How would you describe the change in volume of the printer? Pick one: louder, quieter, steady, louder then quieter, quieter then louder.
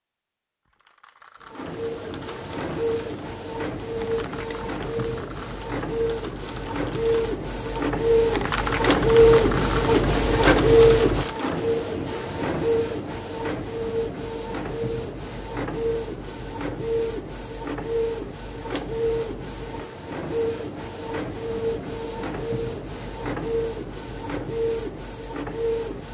louder then quieter.